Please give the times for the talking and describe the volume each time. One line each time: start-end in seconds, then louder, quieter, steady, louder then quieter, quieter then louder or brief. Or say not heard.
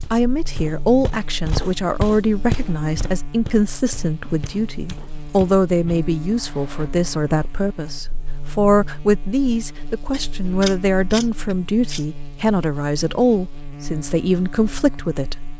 0.1-15.4 steady.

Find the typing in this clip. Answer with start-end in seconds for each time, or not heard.
not heard.